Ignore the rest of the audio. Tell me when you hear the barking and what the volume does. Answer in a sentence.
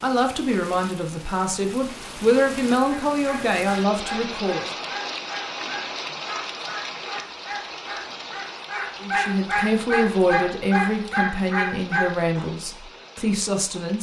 You can hear the barking from 2.9 to 12.5 s, getting louder.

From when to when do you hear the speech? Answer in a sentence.
The speech can be heard from 0.0 to 4.7 s and from 9.0 to 13.9 s.